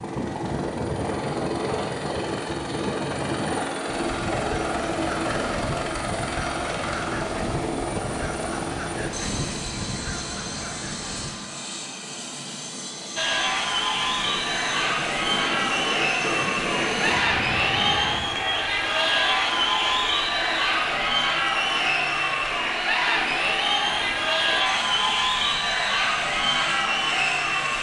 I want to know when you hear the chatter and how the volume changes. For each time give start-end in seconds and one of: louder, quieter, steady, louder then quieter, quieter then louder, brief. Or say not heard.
13.2-27.7 steady.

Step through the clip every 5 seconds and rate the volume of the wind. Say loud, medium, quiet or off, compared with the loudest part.
loud, loud, medium, loud, off, off.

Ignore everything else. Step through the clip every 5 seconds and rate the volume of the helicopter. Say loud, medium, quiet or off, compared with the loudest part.
loud, loud, medium, medium, medium, medium.